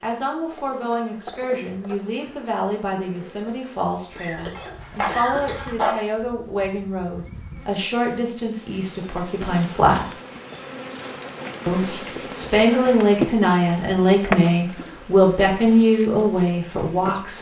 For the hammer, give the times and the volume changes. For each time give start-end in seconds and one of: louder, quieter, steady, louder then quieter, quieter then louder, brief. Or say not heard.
not heard.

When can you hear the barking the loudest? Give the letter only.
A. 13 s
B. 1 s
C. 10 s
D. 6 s
D.